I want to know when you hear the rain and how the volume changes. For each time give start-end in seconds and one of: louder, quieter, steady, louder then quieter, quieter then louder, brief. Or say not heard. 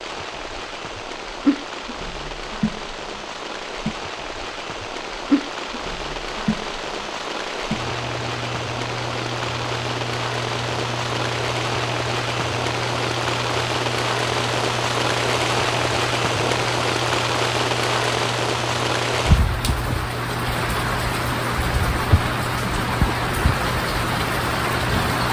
0.0-25.2 louder.